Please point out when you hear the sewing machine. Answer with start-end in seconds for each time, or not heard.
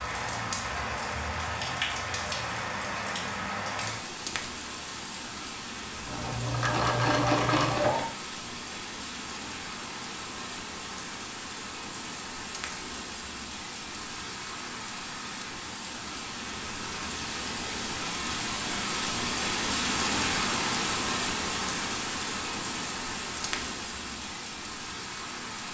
6.0-8.1.